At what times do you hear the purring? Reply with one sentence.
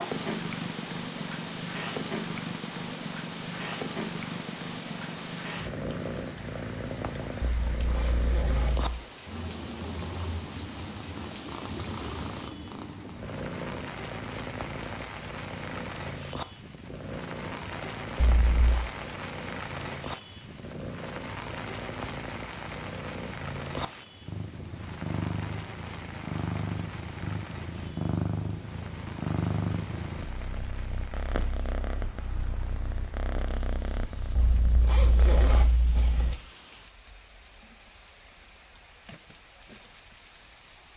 You can hear the purring from 0.0 to 35.7 s.